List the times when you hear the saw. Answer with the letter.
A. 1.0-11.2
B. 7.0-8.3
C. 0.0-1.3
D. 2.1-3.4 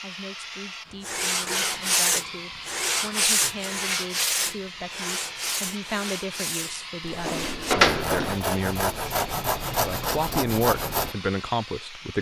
A.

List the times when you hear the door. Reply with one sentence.
The door can be heard from 7.0 to 8.3 s.